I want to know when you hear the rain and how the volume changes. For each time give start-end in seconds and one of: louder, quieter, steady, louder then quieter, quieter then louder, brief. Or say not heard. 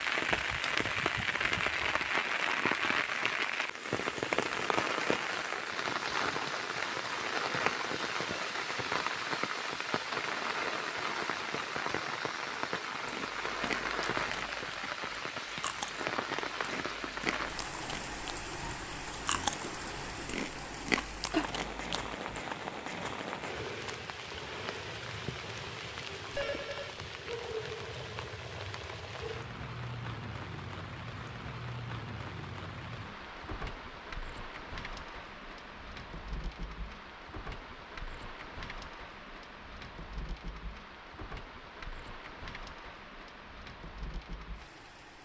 0.0-45.2 quieter.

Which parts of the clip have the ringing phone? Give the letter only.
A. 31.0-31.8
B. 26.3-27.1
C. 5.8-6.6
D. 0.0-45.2
B.